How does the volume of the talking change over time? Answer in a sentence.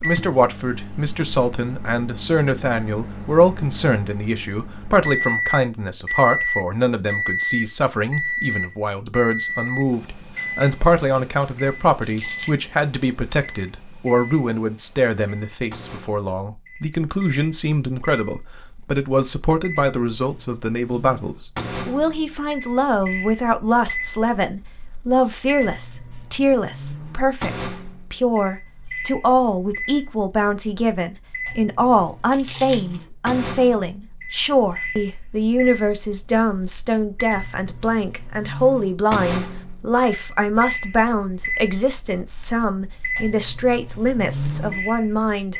The loudness of the talking stays about the same.